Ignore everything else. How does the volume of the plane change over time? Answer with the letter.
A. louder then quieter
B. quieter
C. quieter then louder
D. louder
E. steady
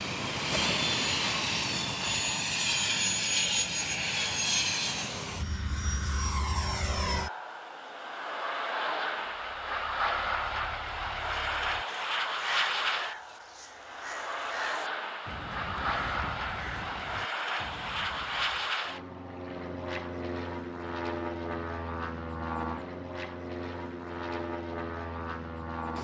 B.